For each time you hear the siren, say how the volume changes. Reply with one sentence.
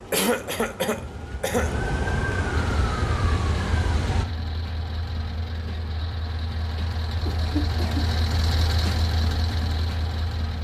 The siren can be heard from 0.0 to 4.2 s, getting louder.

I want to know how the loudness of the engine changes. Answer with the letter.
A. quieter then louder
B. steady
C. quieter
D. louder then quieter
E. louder
E.